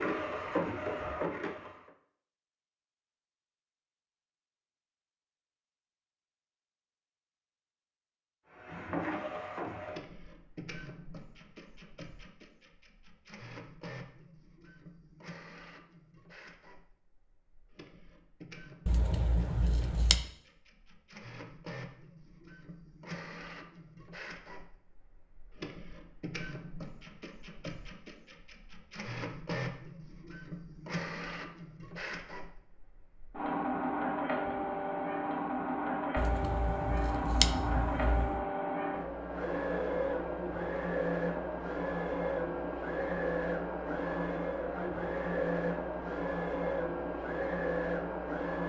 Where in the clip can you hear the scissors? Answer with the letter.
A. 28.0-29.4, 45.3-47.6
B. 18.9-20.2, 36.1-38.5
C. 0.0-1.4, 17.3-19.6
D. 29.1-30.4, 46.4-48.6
B.